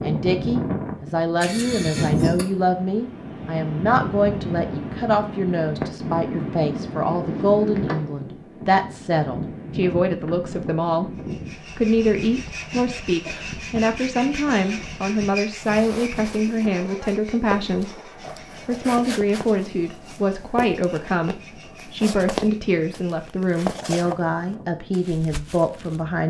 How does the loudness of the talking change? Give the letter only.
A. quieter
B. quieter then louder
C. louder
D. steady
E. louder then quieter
D.